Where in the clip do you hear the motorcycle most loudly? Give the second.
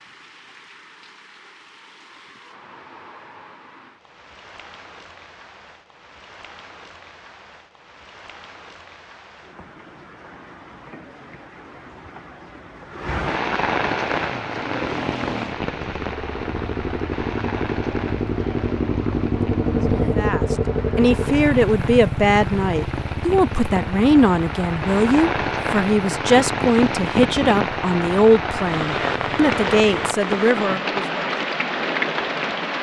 20 s.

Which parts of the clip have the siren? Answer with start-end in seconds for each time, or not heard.
not heard.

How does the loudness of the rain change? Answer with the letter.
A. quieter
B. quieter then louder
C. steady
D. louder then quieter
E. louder
E.